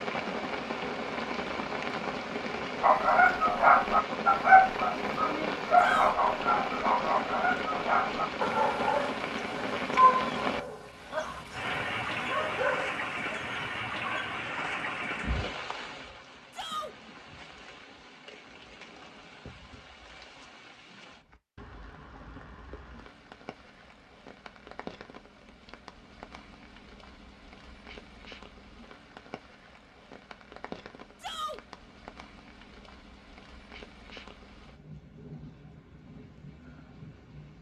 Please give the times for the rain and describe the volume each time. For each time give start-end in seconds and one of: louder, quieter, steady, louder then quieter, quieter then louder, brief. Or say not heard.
0.0-37.5 quieter.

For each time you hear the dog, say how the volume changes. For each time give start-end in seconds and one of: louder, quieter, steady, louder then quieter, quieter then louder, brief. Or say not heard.
2.8-14.4 quieter.